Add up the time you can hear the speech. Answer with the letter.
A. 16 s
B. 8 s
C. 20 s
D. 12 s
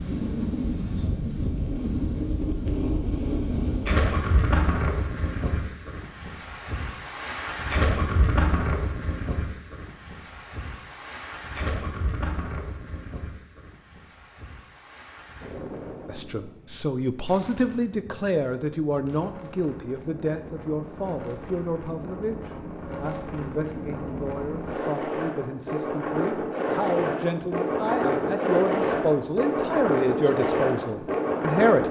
A.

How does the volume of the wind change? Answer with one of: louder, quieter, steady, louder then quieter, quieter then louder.
quieter then louder.